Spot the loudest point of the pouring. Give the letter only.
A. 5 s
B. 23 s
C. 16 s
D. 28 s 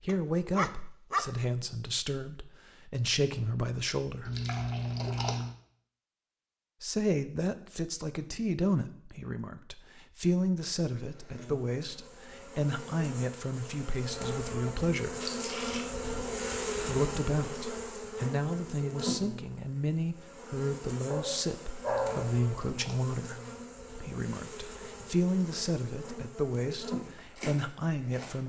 A.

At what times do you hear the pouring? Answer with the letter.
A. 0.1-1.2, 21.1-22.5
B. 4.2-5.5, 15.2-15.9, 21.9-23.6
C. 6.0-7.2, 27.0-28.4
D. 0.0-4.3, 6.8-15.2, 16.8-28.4
B.